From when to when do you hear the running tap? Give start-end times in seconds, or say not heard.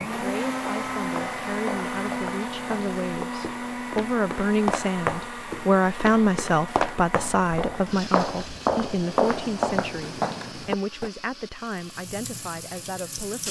11.7-13.4.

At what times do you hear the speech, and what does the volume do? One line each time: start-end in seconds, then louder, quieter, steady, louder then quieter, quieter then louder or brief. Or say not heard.
0.1-13.4 louder then quieter.